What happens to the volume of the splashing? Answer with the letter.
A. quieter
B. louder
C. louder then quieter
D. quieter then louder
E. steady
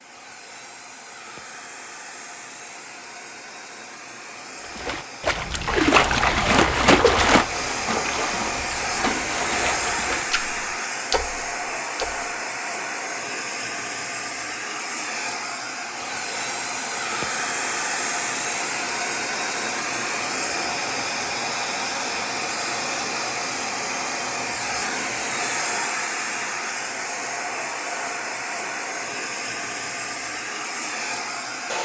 A.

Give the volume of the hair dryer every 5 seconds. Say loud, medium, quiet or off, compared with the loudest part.
quiet, loud, loud, loud, loud, loud, loud.